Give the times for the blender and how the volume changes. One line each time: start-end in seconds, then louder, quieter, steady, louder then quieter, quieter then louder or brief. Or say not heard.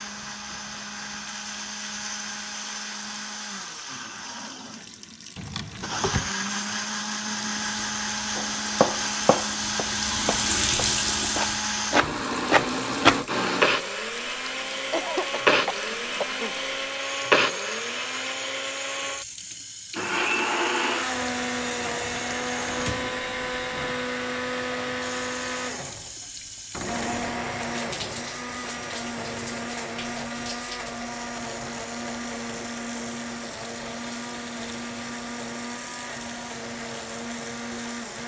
0.0-38.2 louder then quieter.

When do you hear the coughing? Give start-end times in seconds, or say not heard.
14.7-16.6.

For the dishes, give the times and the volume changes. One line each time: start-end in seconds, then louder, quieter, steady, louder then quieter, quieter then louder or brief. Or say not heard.
not heard.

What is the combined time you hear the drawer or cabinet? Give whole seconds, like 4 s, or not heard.
3 s.